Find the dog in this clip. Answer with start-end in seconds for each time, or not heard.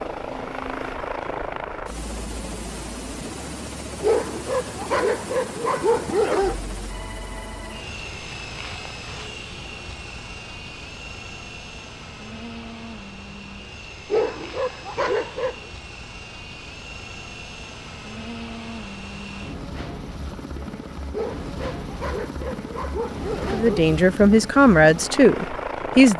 4.0-6.5, 14.1-15.6, 21.1-23.9.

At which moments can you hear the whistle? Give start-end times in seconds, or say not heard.
not heard.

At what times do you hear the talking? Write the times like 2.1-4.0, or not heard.
23.4-26.1.